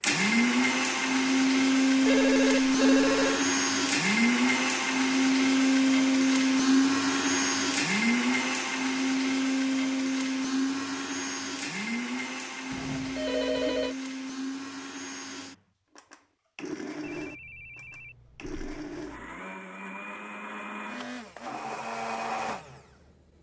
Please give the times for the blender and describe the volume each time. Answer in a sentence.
You can hear the blender from 0.0 to 23.1 s, getting quieter.